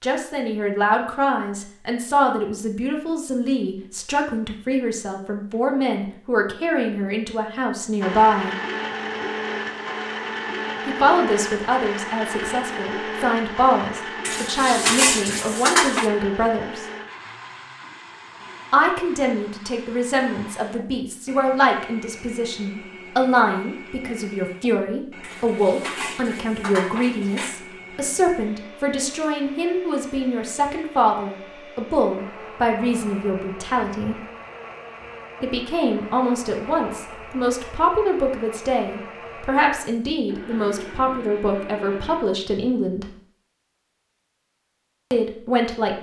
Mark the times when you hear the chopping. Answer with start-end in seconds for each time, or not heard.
not heard.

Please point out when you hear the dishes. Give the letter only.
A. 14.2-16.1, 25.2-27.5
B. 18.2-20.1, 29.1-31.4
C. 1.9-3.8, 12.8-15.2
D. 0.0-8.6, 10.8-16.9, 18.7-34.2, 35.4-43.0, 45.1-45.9
A.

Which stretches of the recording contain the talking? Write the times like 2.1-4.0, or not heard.
0.0-8.6, 10.8-16.9, 18.7-34.2, 35.4-43.0, 45.1-45.9.